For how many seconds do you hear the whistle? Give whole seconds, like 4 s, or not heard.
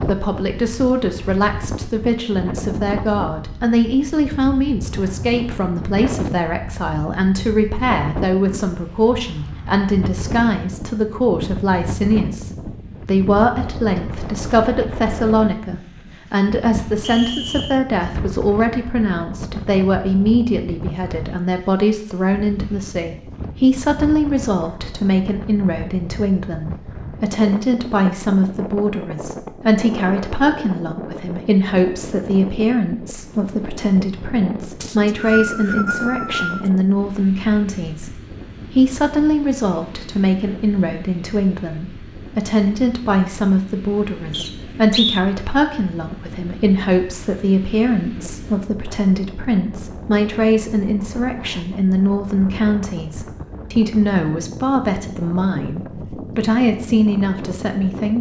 4 s.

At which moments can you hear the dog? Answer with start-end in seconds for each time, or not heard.
not heard.